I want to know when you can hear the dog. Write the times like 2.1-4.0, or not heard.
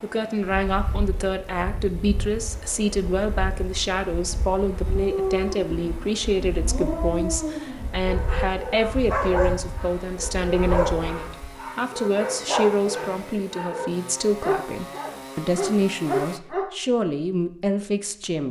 4.8-16.7.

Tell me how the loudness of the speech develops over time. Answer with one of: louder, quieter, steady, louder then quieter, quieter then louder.
steady.